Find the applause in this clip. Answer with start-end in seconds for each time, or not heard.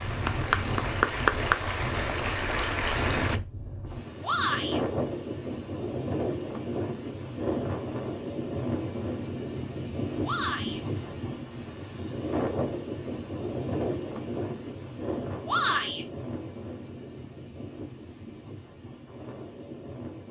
0.0-3.4.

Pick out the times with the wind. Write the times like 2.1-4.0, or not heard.
0.0-20.2.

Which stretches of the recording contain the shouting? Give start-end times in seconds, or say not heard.
4.2-4.8, 10.2-10.8, 15.4-16.1.